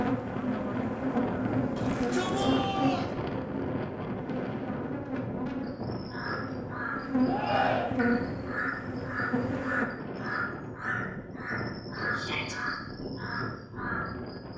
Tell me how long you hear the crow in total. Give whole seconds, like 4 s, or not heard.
9 s.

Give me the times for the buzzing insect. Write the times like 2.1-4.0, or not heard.
0.0-9.8.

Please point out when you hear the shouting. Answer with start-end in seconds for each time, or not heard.
1.8-3.1, 7.2-7.9, 12.2-12.6.